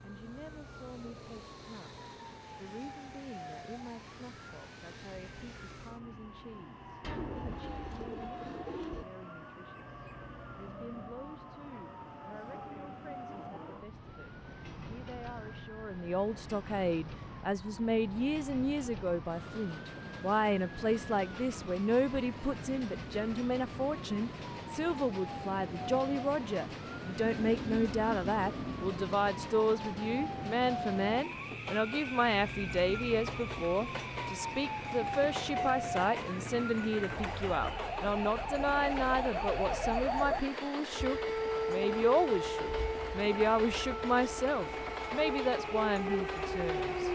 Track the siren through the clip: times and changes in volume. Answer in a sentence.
You can hear the siren from 0.0 to 47.1 s, getting louder.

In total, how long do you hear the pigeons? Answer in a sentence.
The pigeons can be heard for 4 seconds in total.